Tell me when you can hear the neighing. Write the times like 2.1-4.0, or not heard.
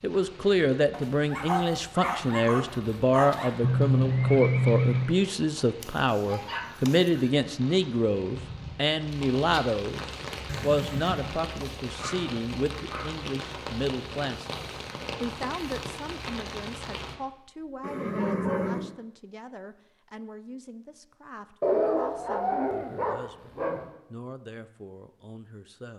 3.6-5.2, 10.4-11.4, 17.8-18.9.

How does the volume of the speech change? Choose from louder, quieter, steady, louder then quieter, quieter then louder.
quieter.